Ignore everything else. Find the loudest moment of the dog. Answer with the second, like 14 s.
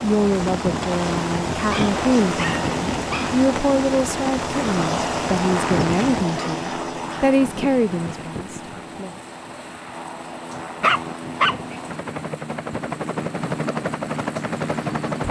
11 s.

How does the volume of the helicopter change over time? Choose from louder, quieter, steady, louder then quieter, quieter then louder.
quieter then louder.